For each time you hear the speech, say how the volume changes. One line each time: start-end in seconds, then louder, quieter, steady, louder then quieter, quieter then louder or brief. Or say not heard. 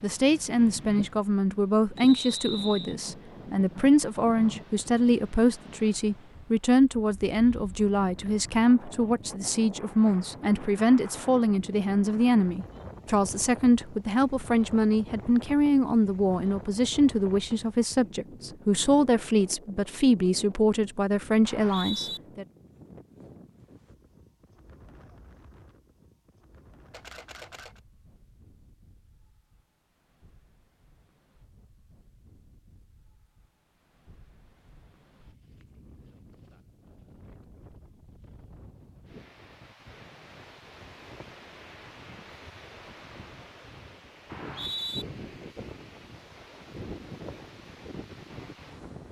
0.0-22.4 steady.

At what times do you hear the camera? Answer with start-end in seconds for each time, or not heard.
26.9-27.8.